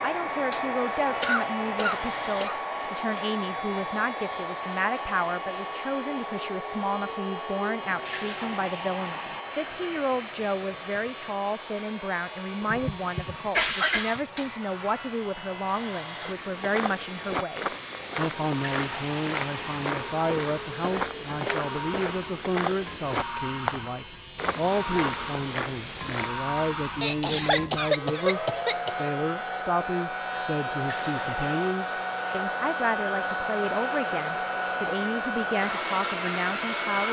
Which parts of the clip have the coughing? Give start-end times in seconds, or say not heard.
1.2-2.6, 12.6-14.2, 26.6-29.1.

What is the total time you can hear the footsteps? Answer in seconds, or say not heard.
10 s.